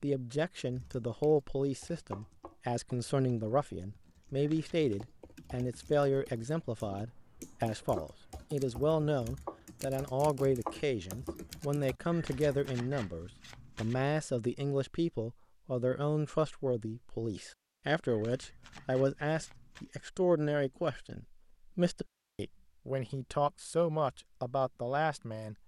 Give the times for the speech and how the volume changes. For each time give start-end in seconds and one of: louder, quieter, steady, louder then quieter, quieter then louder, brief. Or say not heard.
0.0-25.6 steady.